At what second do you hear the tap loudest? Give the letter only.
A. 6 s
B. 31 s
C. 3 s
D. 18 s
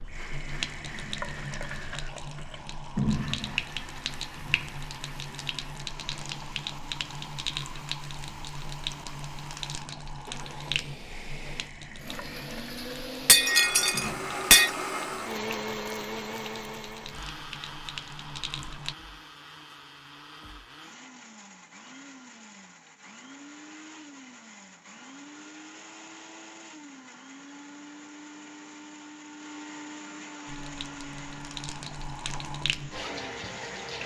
C.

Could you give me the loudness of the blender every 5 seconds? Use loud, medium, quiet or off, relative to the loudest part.
medium, medium, loud, loud, medium, medium, medium.